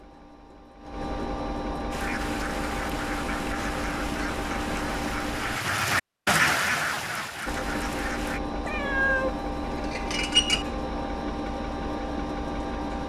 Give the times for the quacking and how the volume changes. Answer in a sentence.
The quacking can be heard from 1.9 to 8.4 s, getting louder then quieter.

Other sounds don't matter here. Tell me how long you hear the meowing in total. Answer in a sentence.
You can hear the meowing for 2 seconds altogether.